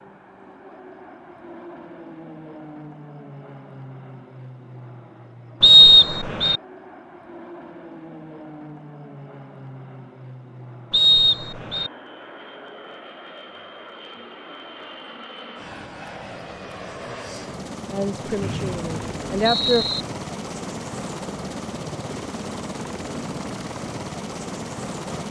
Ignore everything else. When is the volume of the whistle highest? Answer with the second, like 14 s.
6 s.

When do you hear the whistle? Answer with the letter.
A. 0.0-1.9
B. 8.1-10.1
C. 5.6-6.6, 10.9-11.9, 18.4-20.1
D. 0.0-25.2
C.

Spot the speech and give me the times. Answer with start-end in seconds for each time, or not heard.
17.9-19.9.